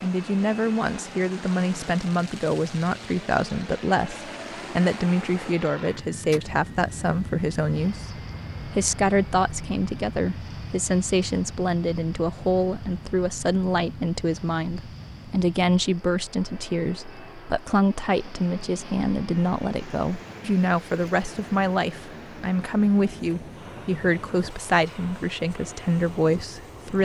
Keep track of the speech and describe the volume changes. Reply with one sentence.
The volume of the speech stays about the same.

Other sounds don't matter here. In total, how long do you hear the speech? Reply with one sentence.
You can hear the speech for 27 seconds altogether.